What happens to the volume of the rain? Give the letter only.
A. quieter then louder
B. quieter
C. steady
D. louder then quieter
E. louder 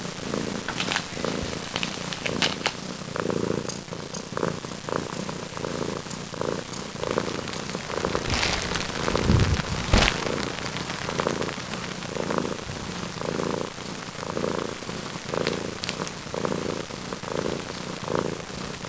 B.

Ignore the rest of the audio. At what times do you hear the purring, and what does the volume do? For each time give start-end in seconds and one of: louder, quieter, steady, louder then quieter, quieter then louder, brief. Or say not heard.
0.0-18.8 steady.